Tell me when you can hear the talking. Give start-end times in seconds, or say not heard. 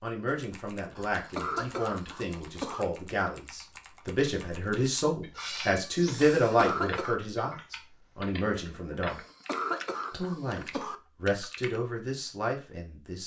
0.0-9.2, 10.1-13.2.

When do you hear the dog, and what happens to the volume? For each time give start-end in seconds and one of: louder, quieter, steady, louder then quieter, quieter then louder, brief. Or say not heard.
not heard.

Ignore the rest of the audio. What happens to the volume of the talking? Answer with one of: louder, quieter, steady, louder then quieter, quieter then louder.
louder then quieter.